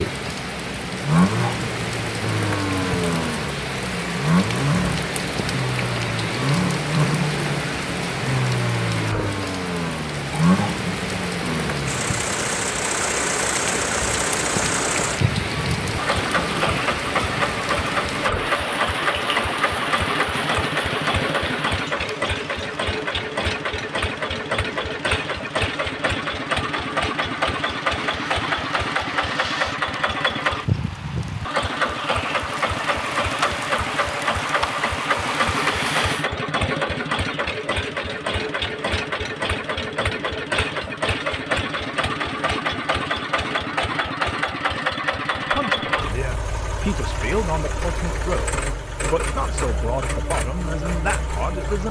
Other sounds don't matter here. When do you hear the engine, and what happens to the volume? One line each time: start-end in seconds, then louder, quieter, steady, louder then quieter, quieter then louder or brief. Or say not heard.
0.1-51.8 steady.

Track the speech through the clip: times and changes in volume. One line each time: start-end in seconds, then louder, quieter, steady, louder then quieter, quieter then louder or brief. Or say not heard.
45.4-51.8 steady.